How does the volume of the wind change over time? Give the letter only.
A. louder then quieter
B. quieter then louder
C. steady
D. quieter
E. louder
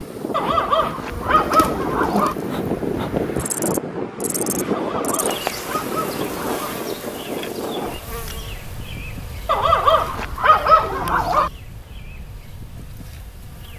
D.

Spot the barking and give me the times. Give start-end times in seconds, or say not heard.
0.3-2.4, 4.7-6.8, 9.4-11.5.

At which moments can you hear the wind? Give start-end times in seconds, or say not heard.
0.0-13.7.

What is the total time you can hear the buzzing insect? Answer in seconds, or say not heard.
14 s.